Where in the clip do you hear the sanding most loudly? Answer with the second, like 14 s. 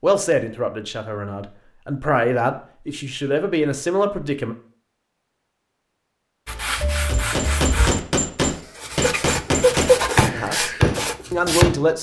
10 s.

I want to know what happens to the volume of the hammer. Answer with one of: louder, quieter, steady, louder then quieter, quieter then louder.
steady.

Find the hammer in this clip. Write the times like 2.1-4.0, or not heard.
7.0-11.7.